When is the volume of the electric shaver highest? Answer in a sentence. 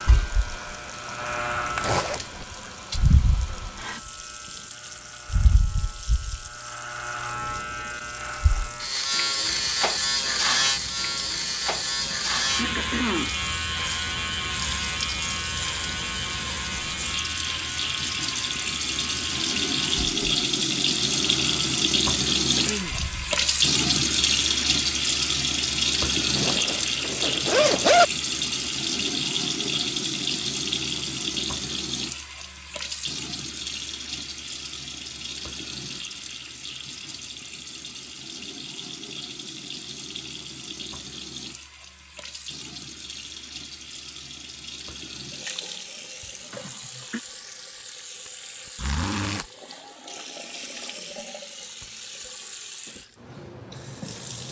The volume of the electric shaver peaks at 10 seconds.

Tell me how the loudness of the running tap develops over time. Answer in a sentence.
The loudness of the running tap goes up, then down.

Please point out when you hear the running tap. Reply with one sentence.
The running tap can be heard from 0.0 to 54.4 s.